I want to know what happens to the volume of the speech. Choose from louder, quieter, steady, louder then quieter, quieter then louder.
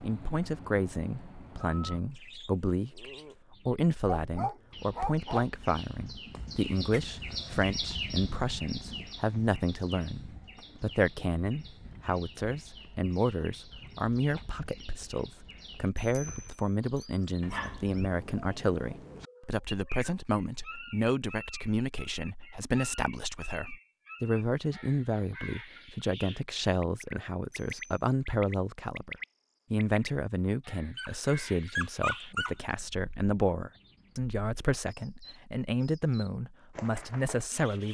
steady.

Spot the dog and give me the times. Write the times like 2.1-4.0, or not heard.
4.0-5.5, 17.4-19.2, 30.9-32.6.